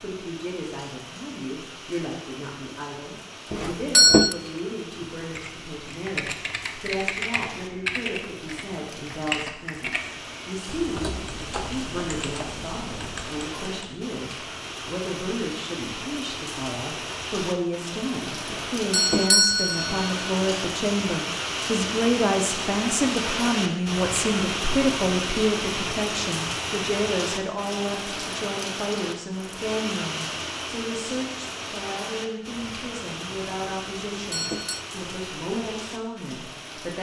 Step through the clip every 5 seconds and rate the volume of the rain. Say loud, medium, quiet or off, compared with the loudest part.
quiet, quiet, medium, medium, loud, loud, medium, medium.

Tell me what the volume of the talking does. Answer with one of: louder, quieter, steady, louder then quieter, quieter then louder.
louder then quieter.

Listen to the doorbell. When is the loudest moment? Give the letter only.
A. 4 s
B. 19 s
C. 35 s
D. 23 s
A.